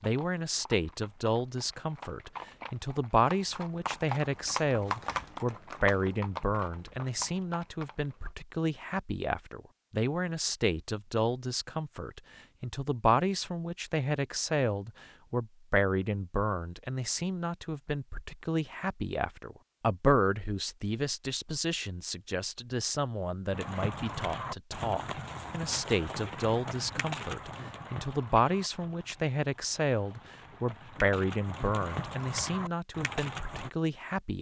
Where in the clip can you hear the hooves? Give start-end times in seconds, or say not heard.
0.0-8.3, 23.5-33.7.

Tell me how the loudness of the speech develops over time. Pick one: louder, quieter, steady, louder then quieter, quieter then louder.
steady.